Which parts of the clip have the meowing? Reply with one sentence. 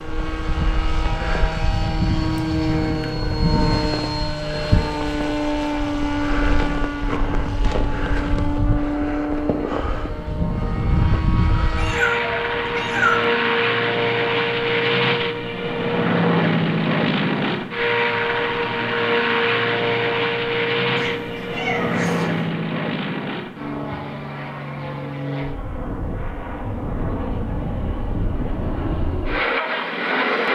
You can hear the meowing from 2.3 to 4.2 s, from 11.8 to 13.2 s and from 20.9 to 22.6 s.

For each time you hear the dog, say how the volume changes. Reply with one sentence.
The dog can't be heard in this clip.